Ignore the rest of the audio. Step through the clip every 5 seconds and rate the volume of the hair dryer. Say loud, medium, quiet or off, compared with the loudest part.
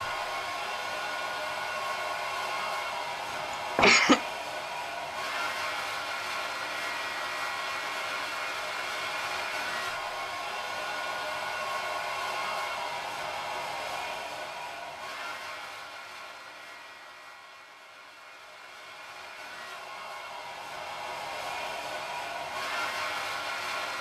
loud, loud, loud, medium, loud.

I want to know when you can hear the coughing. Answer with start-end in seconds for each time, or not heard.
3.3-4.2.